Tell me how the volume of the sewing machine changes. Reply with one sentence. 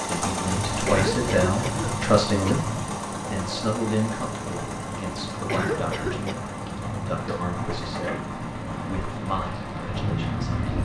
The loudness of the sewing machine goes down.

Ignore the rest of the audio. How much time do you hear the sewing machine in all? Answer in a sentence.
You can hear the sewing machine for 11 seconds altogether.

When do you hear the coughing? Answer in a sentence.
The coughing can be heard from 0.8 to 2.6 s and from 5.5 to 6.4 s.